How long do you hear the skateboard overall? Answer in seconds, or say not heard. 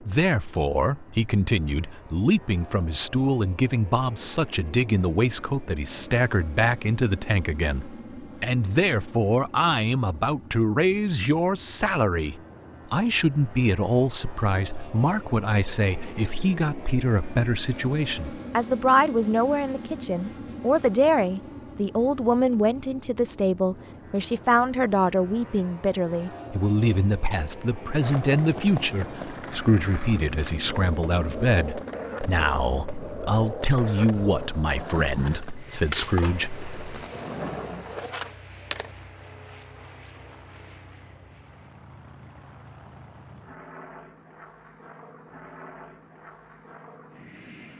11 s.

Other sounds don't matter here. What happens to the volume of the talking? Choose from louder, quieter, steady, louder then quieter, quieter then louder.
steady.